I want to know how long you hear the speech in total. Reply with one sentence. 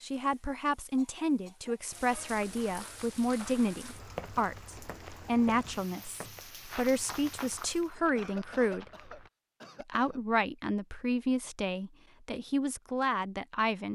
The speech can be heard for 13 seconds in total.